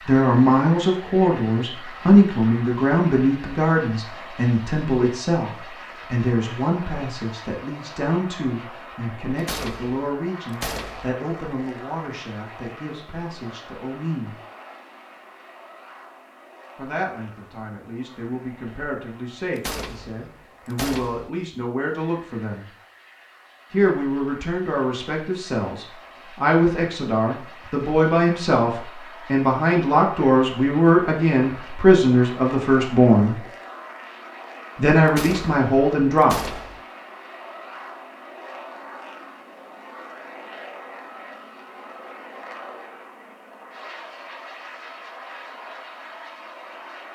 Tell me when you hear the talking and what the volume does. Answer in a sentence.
The talking can be heard from 0.1 to 14.3 s, getting quieter; from 16.8 to 22.6 s, getting louder; from 23.7 to 33.4 s, getting louder; and briefly from 34.8 to 36.5 s.